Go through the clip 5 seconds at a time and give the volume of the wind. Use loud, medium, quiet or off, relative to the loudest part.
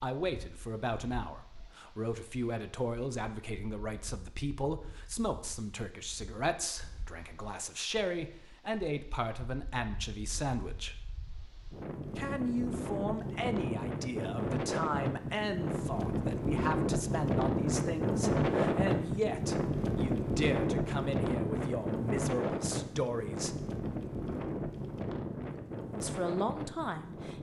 quiet, quiet, medium, loud, loud, medium.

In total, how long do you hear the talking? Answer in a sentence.
The talking can be heard for 24 seconds in total.